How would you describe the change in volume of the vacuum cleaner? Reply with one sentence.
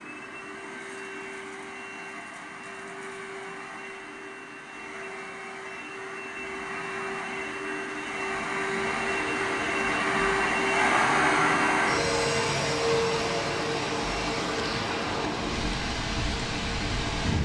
The loudness of the vacuum cleaner goes up, then down.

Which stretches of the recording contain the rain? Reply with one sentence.
You can hear the rain from 8.9 to 17.4 s.